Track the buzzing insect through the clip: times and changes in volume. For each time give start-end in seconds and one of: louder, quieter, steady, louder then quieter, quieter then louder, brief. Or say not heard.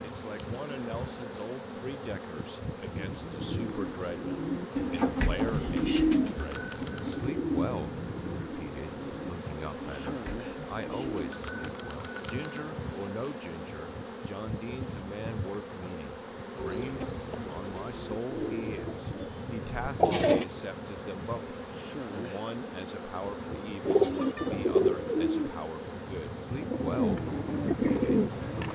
0.0-28.7 steady.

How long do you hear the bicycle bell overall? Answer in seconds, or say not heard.
3 s.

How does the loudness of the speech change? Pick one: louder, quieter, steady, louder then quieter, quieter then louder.
steady.